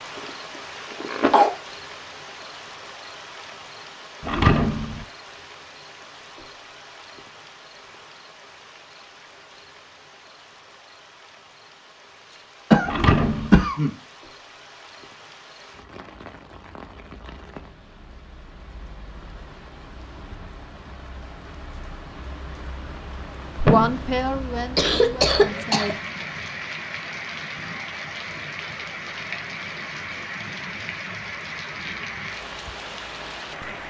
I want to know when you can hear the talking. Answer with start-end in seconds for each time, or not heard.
23.6-25.9.